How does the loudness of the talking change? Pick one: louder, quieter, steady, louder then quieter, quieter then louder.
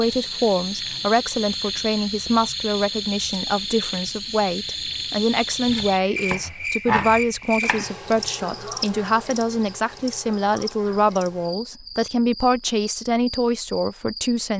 steady.